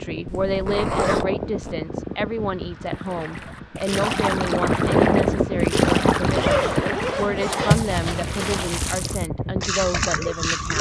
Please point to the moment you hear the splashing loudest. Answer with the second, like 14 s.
8 s.